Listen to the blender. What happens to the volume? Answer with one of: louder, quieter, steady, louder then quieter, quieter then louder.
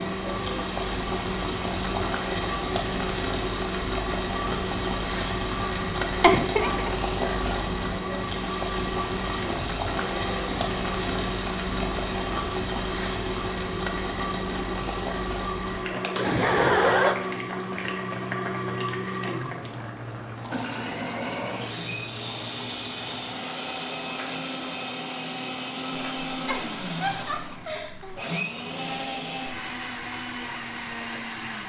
steady.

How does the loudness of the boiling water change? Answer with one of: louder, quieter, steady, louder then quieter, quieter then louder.
quieter.